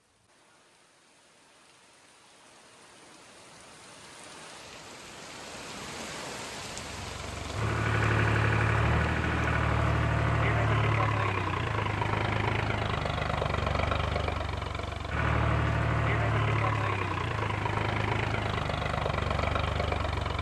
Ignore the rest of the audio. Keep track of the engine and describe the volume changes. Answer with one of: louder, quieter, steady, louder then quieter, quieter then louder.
steady.